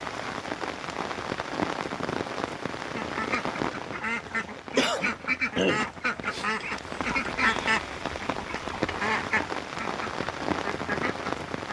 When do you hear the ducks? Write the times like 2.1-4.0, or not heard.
3.0-11.6.